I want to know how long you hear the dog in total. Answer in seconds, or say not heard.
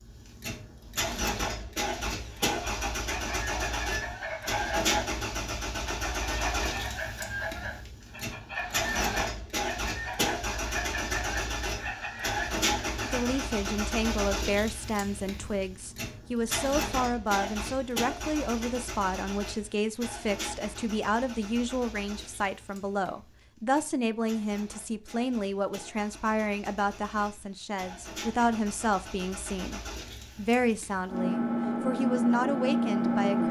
not heard.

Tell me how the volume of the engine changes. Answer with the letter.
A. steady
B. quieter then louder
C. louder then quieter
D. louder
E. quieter
B.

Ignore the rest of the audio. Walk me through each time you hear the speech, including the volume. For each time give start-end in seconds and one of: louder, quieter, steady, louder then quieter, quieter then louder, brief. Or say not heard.
13.1-33.4 steady.